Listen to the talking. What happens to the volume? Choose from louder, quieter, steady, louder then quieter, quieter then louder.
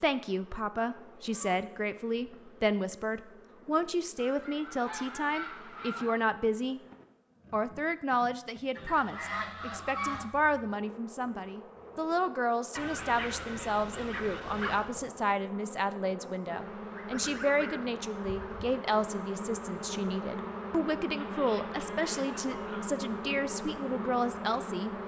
steady.